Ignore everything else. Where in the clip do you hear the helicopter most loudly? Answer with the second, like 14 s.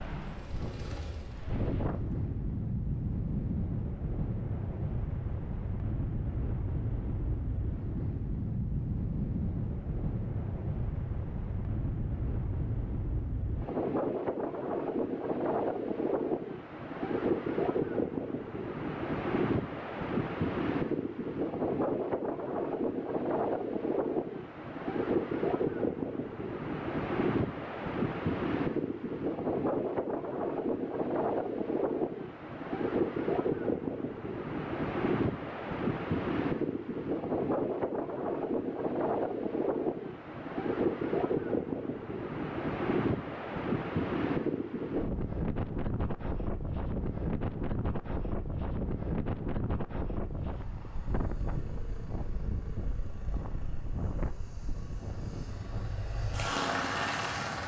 57 s.